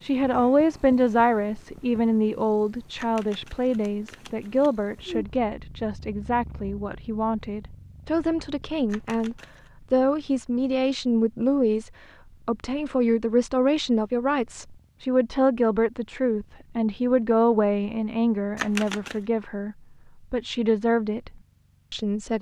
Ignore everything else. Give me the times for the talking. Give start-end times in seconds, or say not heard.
0.0-22.3.